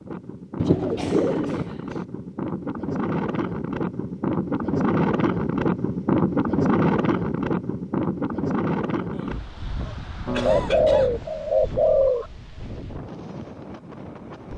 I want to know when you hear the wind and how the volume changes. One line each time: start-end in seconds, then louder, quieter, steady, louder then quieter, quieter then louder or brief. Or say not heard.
0.0-14.5 louder then quieter.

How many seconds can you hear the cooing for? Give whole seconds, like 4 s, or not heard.
3 s.